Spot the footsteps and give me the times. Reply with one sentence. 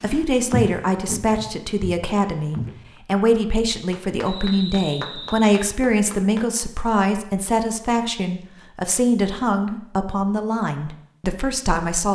You can hear the footsteps from 0.0 to 2.9 s.